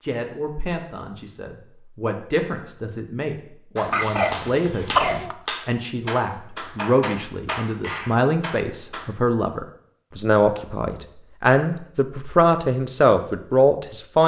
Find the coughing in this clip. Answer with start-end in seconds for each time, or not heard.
3.9-5.3.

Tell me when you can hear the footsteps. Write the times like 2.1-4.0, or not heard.
not heard.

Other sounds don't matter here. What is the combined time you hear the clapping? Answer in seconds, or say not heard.
5 s.